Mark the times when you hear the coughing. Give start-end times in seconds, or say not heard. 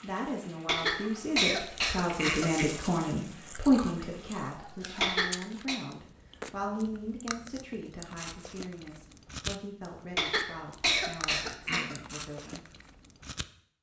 0.7-2.6, 5.0-5.8, 10.2-11.9.